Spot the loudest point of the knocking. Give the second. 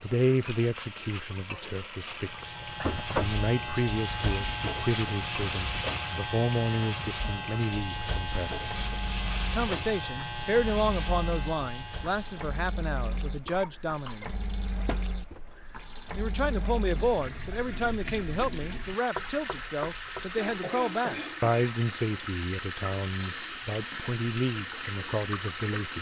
3 s.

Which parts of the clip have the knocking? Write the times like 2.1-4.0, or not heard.
2.8-3.4, 14.8-15.3, 19.1-20.4.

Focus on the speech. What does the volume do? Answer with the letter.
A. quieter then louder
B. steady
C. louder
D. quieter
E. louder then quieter
B.